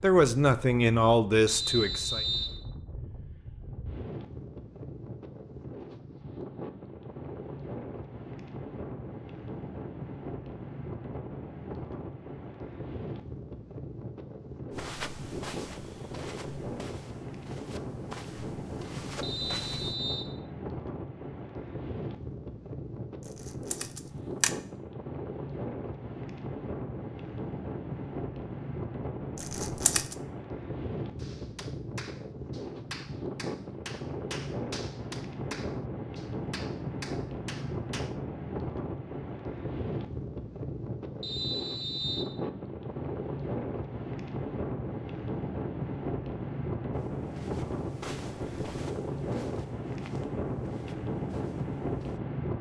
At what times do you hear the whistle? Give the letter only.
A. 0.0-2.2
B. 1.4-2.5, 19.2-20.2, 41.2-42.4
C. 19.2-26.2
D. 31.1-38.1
B.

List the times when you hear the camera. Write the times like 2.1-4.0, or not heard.
23.4-24.6, 29.4-30.1.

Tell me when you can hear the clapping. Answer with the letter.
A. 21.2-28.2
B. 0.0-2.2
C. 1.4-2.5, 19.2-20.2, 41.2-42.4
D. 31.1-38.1
D.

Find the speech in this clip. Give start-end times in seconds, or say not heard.
0.0-2.2.